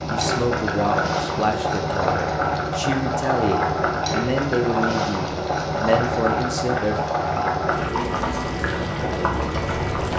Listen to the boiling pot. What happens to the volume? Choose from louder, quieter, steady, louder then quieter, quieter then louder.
steady.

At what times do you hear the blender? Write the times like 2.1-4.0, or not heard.
not heard.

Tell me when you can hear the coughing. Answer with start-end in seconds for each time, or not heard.
not heard.